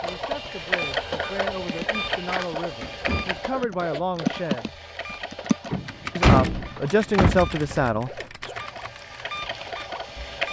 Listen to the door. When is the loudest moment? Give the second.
6 s.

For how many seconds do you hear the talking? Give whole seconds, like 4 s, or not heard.
7 s.